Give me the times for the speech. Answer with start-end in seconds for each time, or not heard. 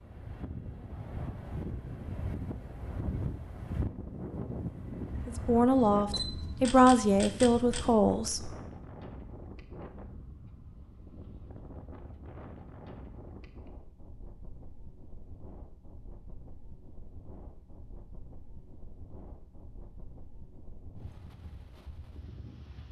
5.2-8.5.